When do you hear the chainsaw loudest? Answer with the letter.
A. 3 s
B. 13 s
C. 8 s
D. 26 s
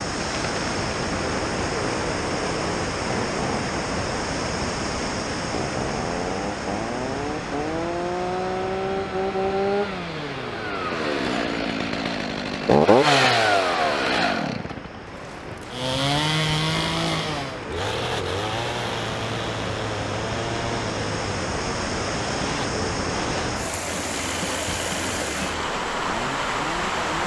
B.